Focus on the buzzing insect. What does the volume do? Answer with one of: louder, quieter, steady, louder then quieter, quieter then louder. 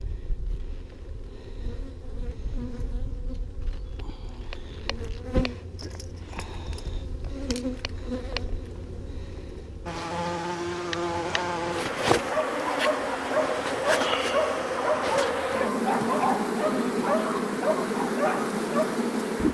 louder.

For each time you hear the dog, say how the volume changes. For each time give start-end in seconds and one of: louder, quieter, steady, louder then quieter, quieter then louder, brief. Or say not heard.
12.2-19.0 steady.